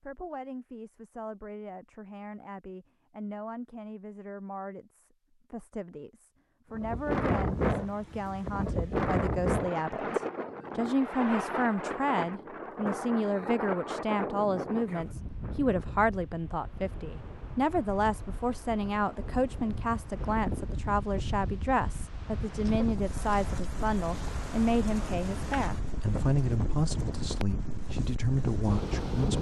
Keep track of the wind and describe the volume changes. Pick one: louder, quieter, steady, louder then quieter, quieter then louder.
quieter then louder.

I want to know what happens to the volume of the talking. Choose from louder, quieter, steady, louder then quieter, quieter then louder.
louder.